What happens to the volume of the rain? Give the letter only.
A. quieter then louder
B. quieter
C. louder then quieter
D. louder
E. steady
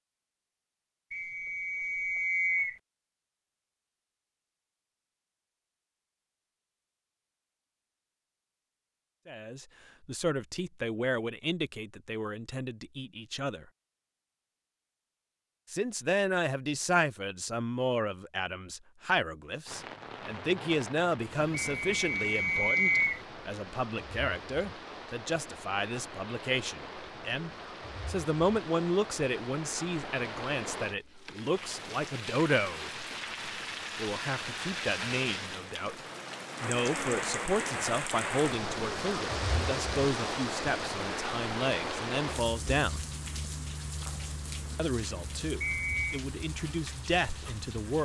C.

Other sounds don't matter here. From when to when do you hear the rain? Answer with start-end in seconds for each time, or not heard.
19.6-48.0.